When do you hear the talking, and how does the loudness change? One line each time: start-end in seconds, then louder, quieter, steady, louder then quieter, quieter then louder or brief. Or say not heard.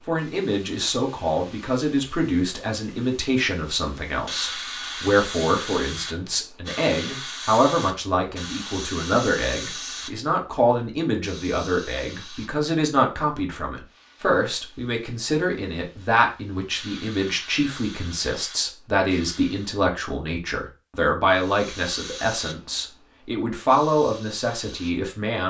0.1-25.4 steady.